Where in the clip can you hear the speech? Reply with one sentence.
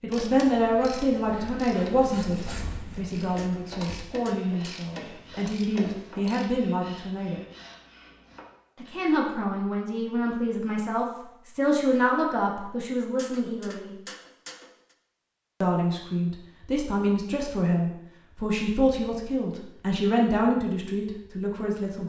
You can hear the speech from 0.0 to 7.4 s, from 8.8 to 13.9 s and from 15.6 to 22.0 s.